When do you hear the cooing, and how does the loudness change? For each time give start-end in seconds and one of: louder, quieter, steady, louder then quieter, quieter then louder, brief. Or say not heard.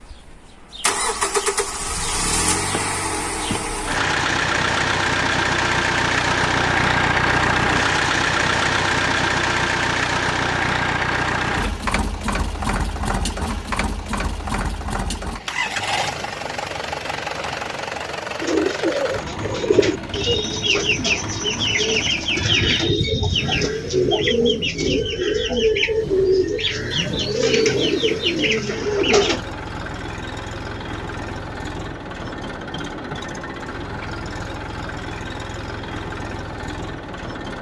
18.4-29.4 steady.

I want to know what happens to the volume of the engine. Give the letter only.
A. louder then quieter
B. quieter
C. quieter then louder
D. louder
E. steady
B.